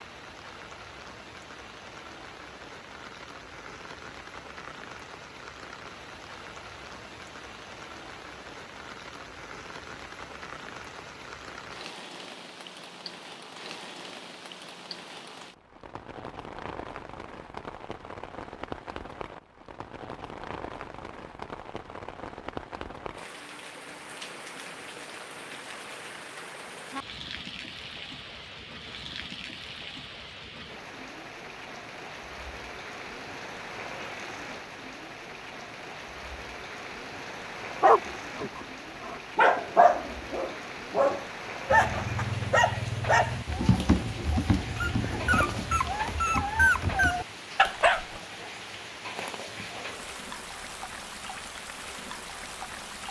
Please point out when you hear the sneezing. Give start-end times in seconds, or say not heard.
not heard.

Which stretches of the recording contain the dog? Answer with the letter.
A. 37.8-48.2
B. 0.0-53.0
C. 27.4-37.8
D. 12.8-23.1
A.